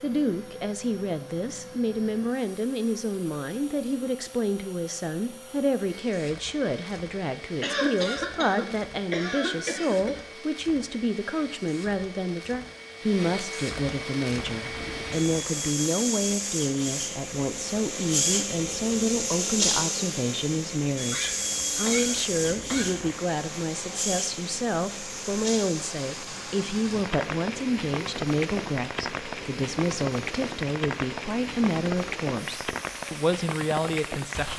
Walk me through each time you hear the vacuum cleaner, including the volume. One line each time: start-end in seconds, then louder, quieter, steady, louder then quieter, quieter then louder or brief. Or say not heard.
0.0-34.5 louder then quieter.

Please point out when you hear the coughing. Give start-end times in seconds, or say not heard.
7.6-10.2, 21.1-23.0.